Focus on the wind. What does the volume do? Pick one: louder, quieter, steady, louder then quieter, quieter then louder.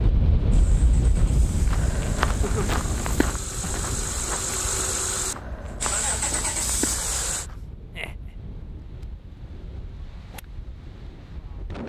quieter.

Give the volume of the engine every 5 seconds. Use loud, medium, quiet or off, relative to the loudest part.
medium, loud, off.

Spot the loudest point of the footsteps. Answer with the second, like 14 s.
2 s.